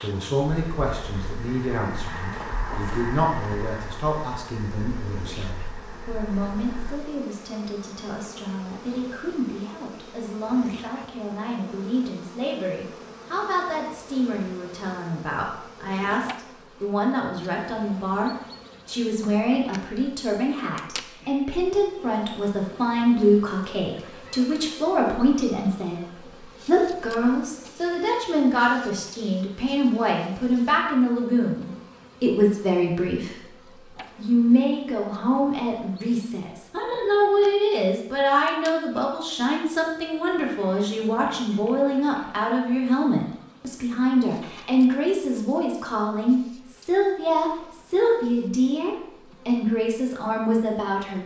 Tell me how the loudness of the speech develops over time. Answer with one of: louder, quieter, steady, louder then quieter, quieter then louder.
louder.